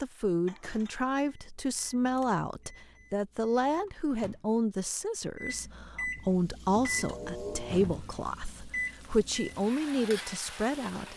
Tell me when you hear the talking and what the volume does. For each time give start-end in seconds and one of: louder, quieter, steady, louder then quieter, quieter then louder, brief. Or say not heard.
0.0-11.1 steady.